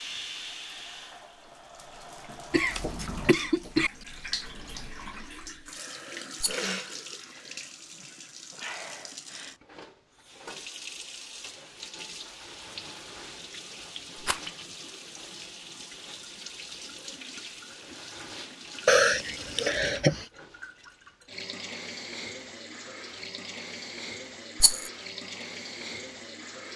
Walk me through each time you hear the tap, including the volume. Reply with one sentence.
The tap can be heard from 0.0 to 26.7 s, at a steady volume.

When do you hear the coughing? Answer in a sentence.
You can hear the coughing from 2.5 to 3.9 s and from 18.9 to 20.2 s.